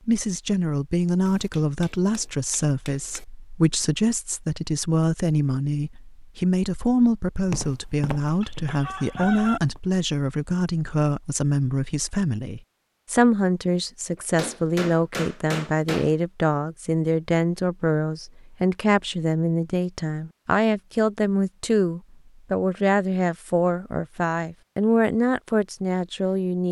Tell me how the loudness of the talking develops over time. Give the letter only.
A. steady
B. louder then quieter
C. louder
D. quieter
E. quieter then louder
A.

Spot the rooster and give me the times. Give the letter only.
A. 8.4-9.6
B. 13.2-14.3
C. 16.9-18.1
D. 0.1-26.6
A.